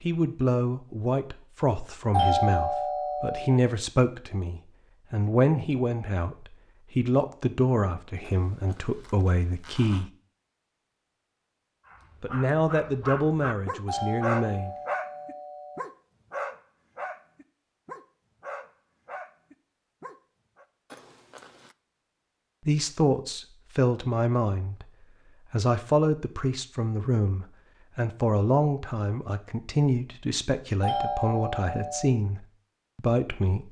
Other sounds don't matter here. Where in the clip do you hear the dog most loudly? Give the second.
14 s.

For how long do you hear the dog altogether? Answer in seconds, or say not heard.
9 s.